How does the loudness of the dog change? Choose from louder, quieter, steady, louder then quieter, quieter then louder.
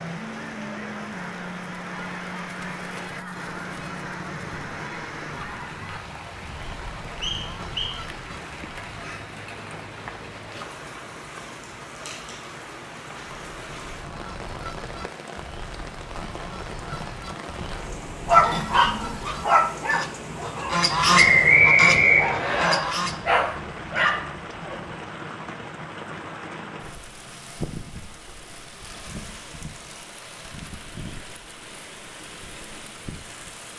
quieter then louder.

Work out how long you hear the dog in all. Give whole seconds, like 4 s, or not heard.
7 s.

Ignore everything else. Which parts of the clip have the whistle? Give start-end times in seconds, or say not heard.
7.2-8.0, 21.1-22.7.